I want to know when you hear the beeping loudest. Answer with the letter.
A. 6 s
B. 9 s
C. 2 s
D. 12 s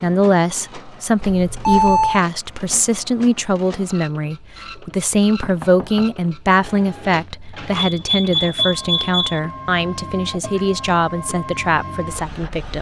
C.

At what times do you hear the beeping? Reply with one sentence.
The beeping can be heard from 1.2 to 2.2 s and from 7.8 to 9.4 s.